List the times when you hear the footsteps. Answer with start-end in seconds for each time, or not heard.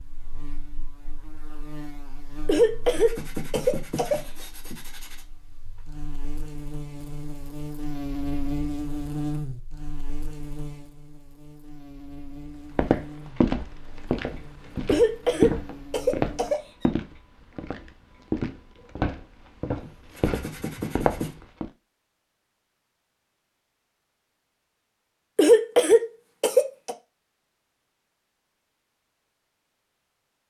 12.8-21.7.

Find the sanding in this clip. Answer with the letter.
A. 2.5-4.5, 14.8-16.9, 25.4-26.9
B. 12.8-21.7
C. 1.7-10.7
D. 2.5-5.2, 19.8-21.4
D.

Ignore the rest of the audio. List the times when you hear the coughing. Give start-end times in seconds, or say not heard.
2.5-4.5, 14.8-16.9, 25.4-26.9.